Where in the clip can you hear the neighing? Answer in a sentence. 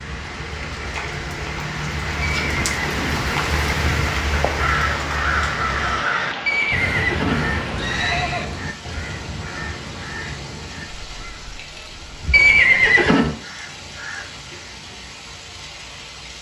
The neighing can be heard from 2.2 to 3.2 s, from 6.5 to 8.4 s and from 12.3 to 13.3 s.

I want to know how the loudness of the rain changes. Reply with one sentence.
The loudness of the rain goes down.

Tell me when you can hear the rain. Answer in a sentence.
The rain can be heard from 0.0 to 16.3 s.